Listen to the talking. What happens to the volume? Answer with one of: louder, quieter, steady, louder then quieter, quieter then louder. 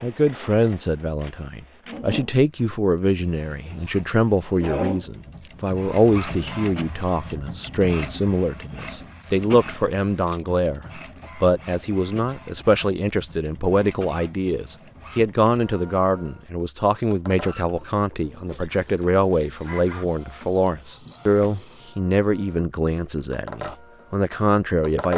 steady.